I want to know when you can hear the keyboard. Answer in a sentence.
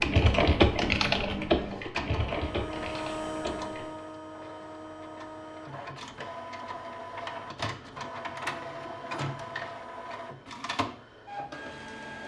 The keyboard can be heard from 0.0 to 3.9 s.